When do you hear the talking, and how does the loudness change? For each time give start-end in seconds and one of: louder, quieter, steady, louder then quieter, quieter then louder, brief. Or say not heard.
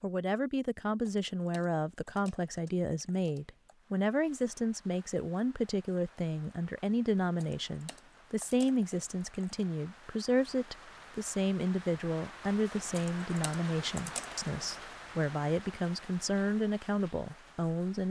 0.0-18.0 steady.